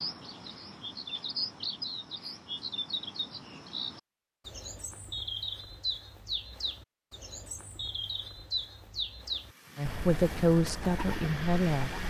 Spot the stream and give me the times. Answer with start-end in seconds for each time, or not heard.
not heard.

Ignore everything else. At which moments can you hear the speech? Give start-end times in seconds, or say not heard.
9.8-12.0.